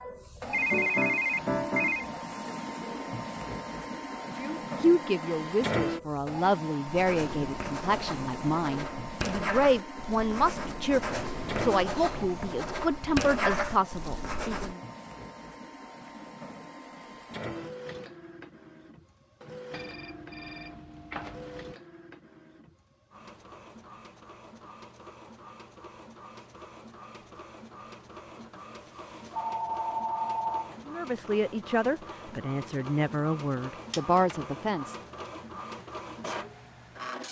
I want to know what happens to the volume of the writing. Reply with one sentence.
The loudness of the writing goes up.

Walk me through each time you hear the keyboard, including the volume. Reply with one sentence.
You can't hear the keyboard here.